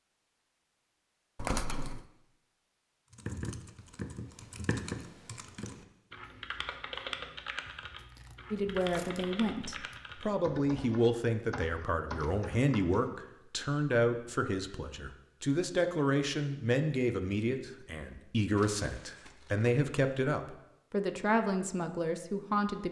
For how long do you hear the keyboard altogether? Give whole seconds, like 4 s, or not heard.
10 s.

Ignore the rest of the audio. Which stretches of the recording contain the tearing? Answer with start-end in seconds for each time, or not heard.
1.4-2.0, 8.0-10.0, 18.6-19.7.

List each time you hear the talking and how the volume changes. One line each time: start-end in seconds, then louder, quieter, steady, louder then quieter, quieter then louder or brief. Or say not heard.
8.5-22.8 steady.